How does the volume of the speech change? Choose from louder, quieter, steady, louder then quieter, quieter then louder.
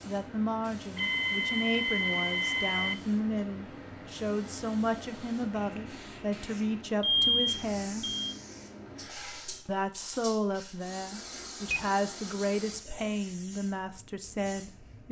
steady.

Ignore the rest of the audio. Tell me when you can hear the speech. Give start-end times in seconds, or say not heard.
0.1-8.1, 9.7-15.0.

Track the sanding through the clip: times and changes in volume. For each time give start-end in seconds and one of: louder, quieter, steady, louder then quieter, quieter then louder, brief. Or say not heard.
not heard.